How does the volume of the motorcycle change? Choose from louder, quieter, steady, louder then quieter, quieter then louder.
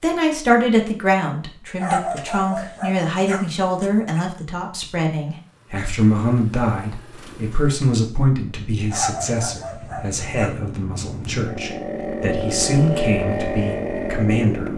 louder.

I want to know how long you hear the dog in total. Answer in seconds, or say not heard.
4 s.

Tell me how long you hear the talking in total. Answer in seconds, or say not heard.
15 s.